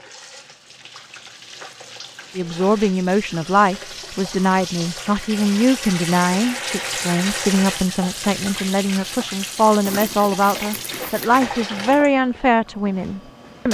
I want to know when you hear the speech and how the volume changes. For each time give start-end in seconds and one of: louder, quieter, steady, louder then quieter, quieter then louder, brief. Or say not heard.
2.4-13.6 steady.